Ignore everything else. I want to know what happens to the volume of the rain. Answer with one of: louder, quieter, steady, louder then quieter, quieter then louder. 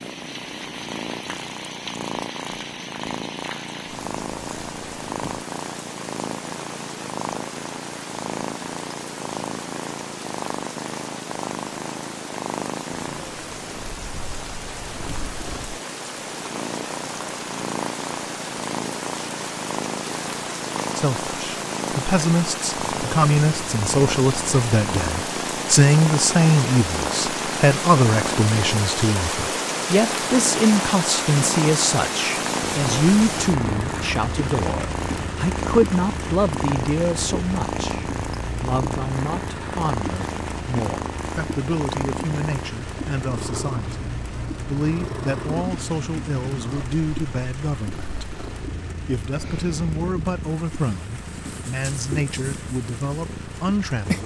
louder then quieter.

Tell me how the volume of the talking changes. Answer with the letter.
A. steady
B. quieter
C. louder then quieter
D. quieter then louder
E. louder
B.